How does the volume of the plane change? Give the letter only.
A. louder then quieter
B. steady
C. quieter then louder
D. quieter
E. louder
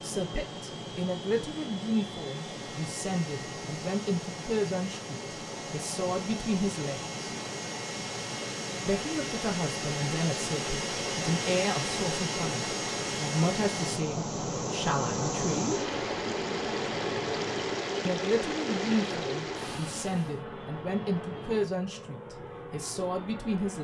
A.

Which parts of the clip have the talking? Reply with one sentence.
The talking can be heard from 0.0 to 7.2 s, from 8.8 to 15.8 s and from 18.1 to 23.7 s.